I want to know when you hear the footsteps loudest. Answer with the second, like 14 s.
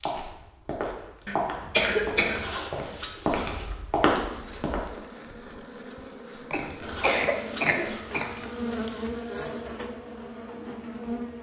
4 s.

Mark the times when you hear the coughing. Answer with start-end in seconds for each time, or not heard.
1.2-2.5, 6.5-8.3.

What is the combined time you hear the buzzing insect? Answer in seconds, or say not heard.
7 s.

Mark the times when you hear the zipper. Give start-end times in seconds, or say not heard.
2.1-3.8, 6.5-8.5.